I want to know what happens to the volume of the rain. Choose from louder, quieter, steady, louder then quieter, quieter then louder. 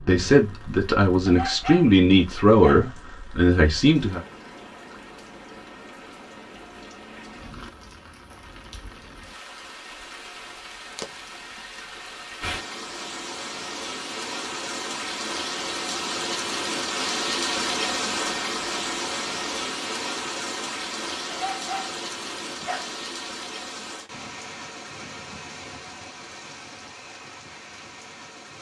louder then quieter.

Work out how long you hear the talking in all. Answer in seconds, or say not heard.
4 s.